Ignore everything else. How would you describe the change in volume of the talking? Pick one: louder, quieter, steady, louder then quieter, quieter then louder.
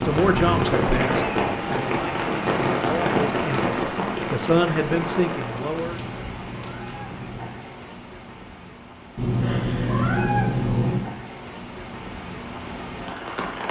quieter then louder.